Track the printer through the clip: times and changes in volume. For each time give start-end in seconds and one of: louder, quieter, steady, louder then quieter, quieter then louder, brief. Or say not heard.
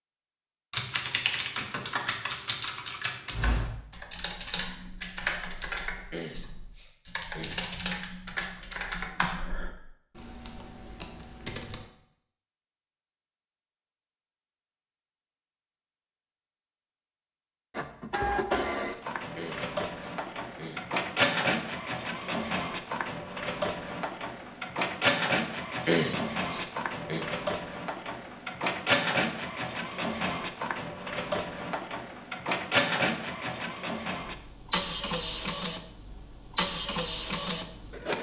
17.8-38.1 steady.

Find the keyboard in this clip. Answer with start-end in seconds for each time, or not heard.
0.7-11.8.